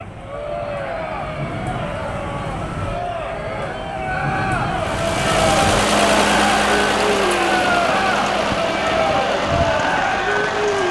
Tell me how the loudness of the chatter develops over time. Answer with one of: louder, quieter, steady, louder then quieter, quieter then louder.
louder.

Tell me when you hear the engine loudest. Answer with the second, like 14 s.
6 s.